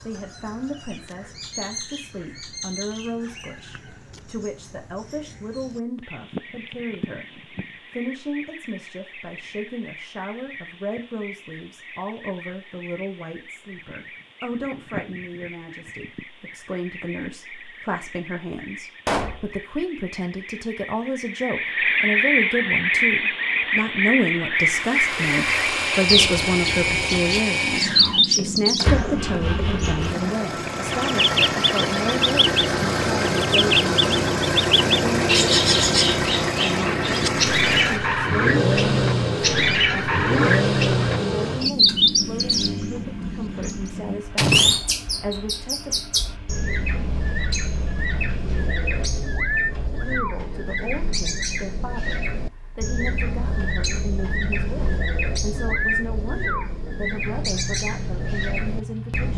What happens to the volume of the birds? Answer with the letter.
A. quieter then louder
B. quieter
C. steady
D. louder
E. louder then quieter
E.